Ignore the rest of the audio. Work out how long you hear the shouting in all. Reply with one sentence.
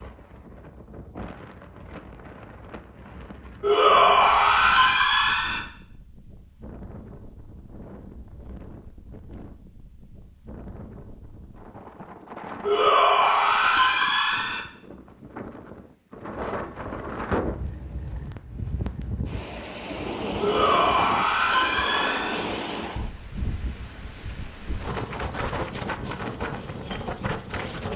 You can hear the shouting for 6 seconds altogether.